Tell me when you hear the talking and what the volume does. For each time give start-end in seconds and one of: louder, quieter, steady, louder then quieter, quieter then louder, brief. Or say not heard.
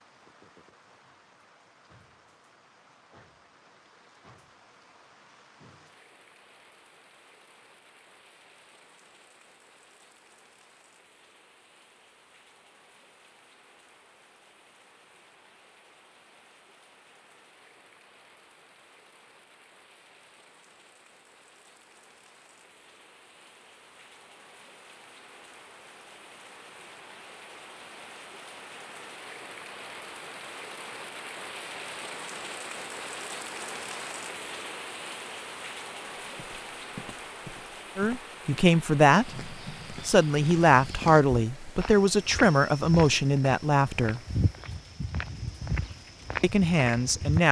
38.0-44.2 steady
46.4-47.4 brief.